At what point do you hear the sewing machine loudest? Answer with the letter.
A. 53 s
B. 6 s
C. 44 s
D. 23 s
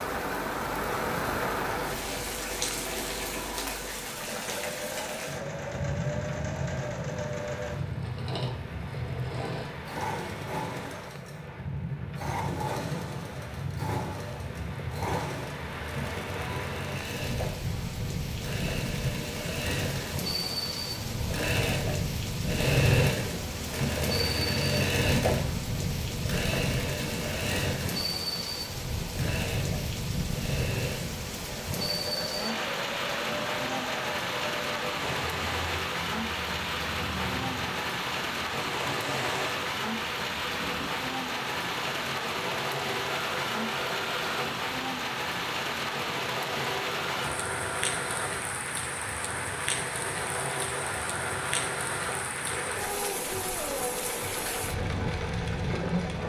D.